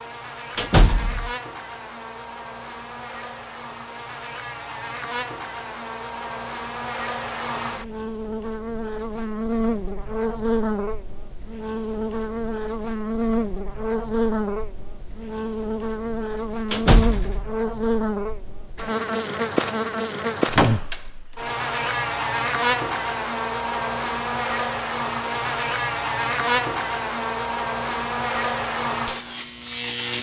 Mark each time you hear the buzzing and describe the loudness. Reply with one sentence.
The buzzing can be heard from 0.0 to 30.1 s, getting louder.